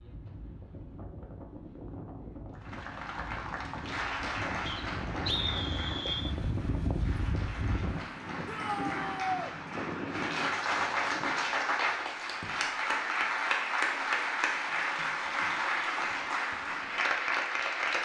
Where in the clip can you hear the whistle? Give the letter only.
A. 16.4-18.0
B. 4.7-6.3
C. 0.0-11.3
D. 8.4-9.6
B.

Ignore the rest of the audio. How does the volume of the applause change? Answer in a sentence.
The loudness of the applause goes down, then up.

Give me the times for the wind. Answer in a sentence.
You can hear the wind from 0.0 to 11.3 s.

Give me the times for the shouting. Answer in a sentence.
You can hear the shouting from 8.4 to 9.6 s.